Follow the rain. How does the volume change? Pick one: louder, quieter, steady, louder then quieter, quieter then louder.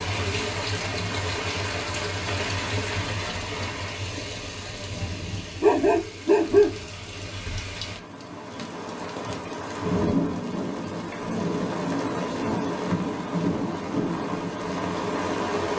quieter then louder.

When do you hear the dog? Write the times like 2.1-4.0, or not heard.
5.6-6.8.